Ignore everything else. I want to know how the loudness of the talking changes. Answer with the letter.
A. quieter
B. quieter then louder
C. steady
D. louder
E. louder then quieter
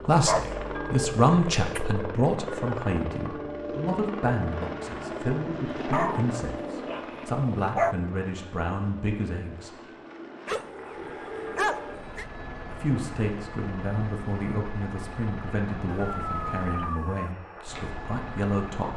A.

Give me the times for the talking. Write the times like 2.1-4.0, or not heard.
0.1-9.7, 12.7-18.9.